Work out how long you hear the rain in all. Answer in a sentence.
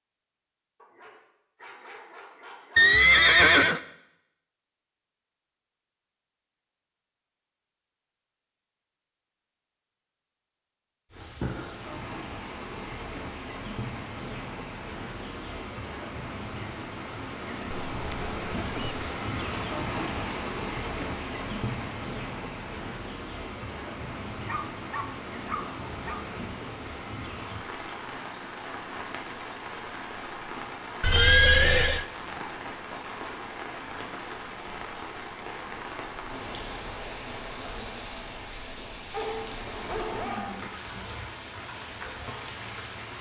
The rain can be heard for 32 seconds in total.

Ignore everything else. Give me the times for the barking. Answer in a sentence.
The barking can be heard from 0.8 to 2.8 s, from 24.4 to 26.2 s and from 39.1 to 41.0 s.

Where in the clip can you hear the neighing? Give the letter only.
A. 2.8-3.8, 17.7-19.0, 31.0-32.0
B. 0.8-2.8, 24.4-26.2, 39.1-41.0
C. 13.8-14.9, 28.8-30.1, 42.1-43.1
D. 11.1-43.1
A.